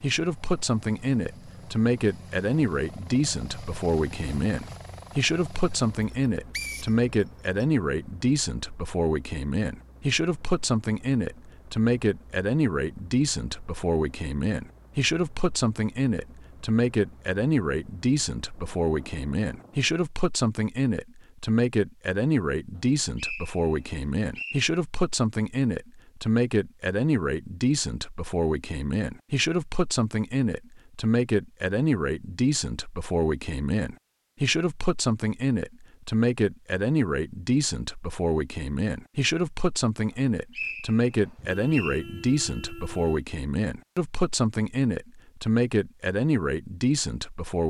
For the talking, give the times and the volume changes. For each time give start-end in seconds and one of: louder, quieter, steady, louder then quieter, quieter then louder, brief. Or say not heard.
0.0-47.6 steady.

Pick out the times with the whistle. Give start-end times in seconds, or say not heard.
6.1-7.7, 22.8-24.6, 40.1-42.0.